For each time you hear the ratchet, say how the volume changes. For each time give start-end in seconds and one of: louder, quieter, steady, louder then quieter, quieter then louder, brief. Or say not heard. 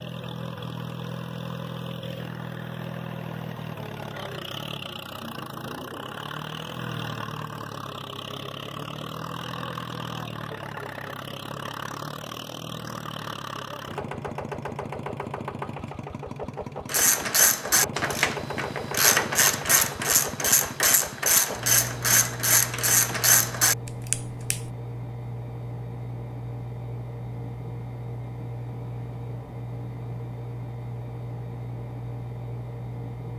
16.9-24.6 steady.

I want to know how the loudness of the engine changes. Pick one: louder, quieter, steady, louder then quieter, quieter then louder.
steady.